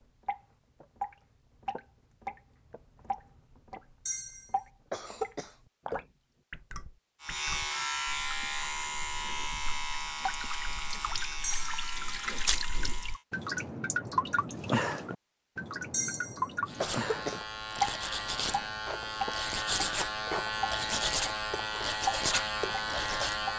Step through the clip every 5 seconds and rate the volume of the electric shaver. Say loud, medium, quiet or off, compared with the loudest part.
off, loud, medium, loud, loud.